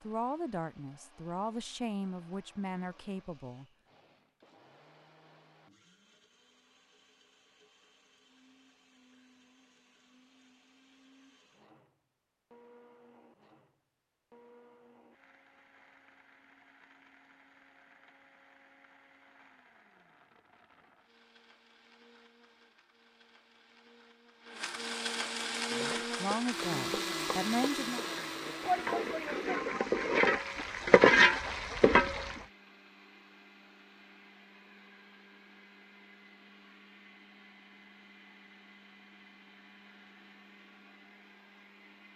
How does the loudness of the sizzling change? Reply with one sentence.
The volume of the sizzling goes up.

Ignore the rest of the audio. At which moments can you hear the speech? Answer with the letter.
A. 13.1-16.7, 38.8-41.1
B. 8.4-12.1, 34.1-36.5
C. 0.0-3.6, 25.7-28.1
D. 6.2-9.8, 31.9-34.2
C.